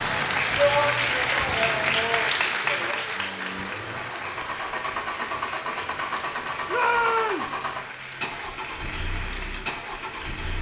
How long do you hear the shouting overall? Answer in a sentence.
You can hear the shouting for 3 seconds altogether.